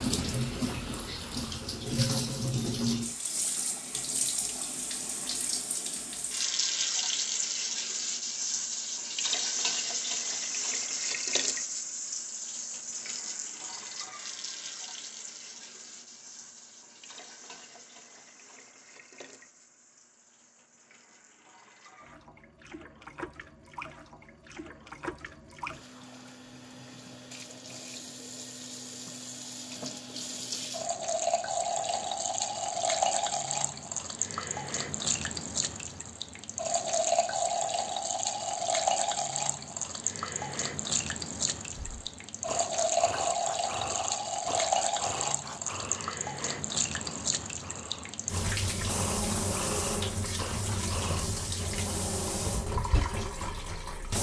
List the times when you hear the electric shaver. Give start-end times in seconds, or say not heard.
not heard.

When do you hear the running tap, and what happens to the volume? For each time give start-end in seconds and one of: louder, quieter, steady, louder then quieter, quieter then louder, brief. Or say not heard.
0.0-54.1 quieter then louder.